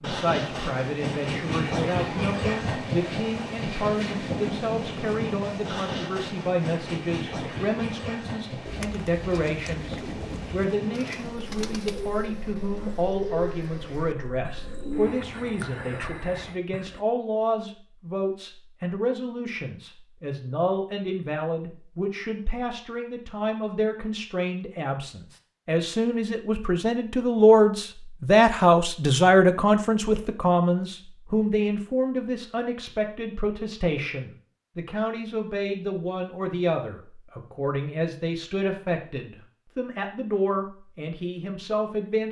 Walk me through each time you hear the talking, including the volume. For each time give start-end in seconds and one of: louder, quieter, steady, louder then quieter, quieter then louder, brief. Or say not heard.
0.0-42.2 louder then quieter.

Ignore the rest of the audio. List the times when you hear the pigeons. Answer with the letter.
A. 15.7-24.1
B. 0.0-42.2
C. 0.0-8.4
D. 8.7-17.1
D.